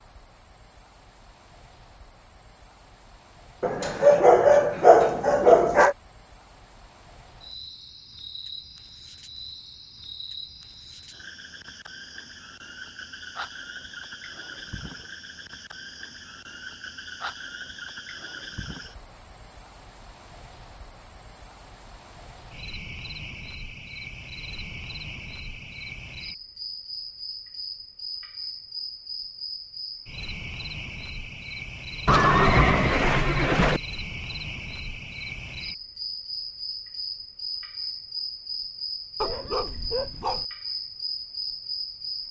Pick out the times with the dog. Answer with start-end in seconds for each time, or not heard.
3.6-6.0, 39.2-40.5.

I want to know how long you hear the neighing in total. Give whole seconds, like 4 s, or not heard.
2 s.